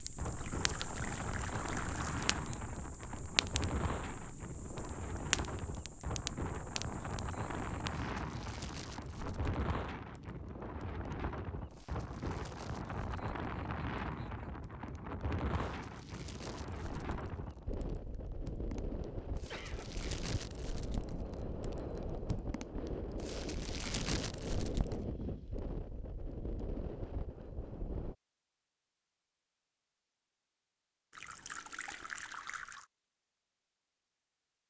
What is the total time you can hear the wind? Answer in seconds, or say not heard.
28 s.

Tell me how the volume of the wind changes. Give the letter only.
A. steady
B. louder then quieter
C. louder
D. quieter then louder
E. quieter
A.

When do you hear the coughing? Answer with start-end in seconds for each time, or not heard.
19.4-20.1.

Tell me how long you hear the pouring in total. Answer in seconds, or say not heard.
4 s.